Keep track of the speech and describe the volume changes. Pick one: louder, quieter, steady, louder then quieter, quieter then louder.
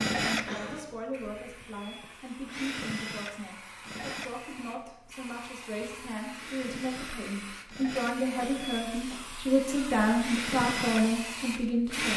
louder.